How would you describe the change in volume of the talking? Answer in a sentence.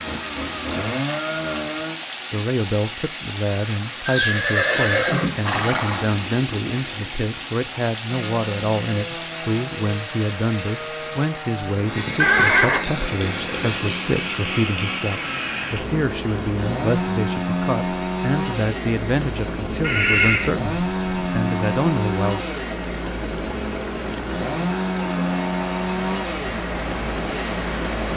The volume of the talking stays about the same.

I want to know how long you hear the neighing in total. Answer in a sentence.
The neighing can be heard for 4 seconds in total.